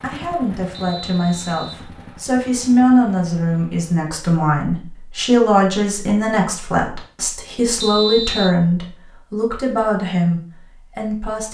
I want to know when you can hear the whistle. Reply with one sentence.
The whistle can be heard from 0.7 to 1.9 s and from 7.8 to 8.6 s.